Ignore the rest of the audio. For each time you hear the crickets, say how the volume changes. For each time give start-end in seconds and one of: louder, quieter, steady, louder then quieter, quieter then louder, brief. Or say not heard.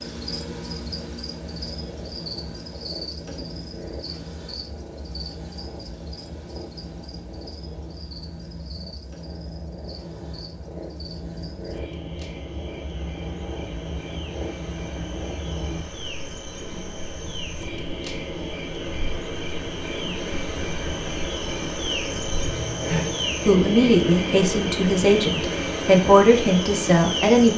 0.0-27.5 quieter then louder.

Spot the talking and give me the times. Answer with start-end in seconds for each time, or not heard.
22.9-27.5.